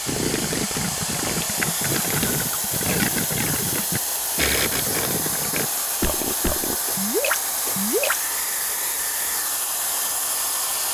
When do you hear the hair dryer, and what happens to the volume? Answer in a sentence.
The hair dryer can be heard from 0.0 to 10.9 s, at a steady volume.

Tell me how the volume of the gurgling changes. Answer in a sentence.
The volume of the gurgling stays about the same.